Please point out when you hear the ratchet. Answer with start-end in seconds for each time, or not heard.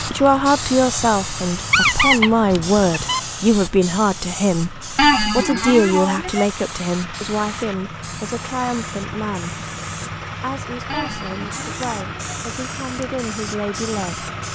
not heard.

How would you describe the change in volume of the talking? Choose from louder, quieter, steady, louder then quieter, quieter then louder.
quieter.